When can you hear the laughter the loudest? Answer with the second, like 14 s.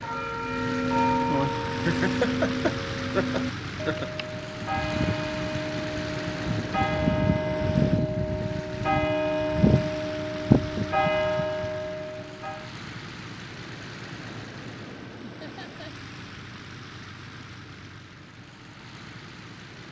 2 s.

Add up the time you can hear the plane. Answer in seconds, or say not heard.
20 s.